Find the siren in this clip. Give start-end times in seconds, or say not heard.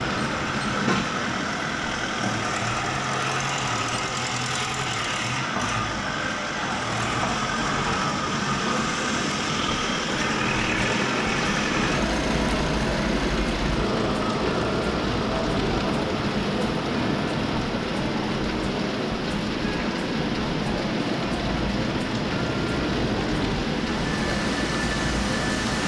not heard.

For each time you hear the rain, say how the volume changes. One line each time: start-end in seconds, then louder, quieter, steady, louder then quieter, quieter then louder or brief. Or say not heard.
0.0-25.8 louder.